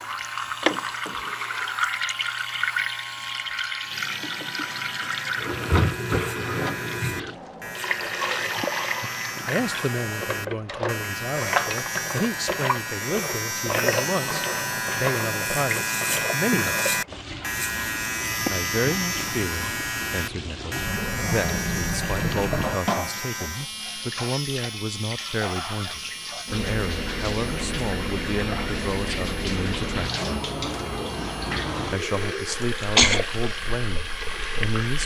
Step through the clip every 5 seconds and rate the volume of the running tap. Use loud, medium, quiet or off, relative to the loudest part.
loud, loud, loud, medium, loud, loud, loud.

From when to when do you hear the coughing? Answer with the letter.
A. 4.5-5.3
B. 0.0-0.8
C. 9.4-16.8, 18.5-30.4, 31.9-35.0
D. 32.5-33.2
D.